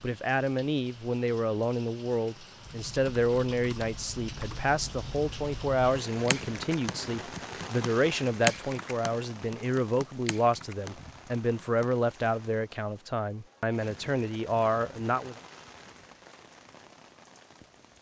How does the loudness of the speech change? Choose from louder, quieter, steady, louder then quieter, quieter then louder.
steady.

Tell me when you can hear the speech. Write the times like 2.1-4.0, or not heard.
0.0-15.3.